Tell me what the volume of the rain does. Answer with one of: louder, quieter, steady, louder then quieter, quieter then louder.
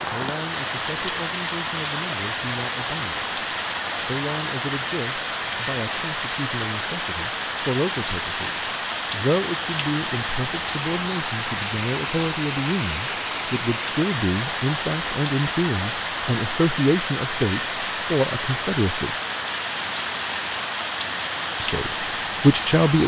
steady.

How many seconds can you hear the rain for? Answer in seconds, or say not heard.
23 s.